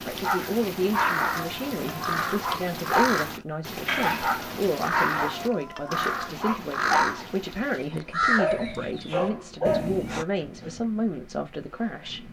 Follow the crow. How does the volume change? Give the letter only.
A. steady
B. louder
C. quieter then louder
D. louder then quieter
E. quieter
A.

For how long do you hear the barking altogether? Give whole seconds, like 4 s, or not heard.
9 s.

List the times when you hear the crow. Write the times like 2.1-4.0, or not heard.
0.3-10.2.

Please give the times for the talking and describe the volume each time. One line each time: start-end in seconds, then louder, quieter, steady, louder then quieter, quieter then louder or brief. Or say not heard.
0.1-12.2 steady.